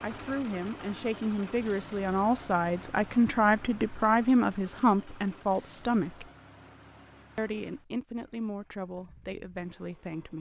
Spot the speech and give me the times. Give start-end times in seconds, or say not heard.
0.0-6.3, 7.3-10.3.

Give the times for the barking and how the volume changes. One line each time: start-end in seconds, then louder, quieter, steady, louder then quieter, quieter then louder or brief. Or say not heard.
not heard.